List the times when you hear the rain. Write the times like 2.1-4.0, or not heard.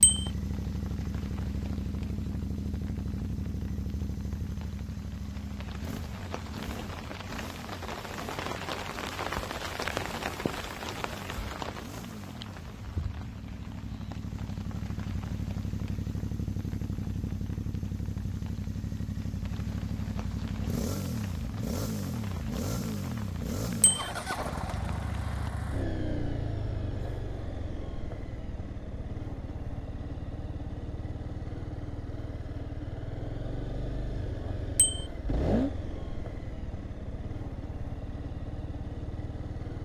0.0-25.5.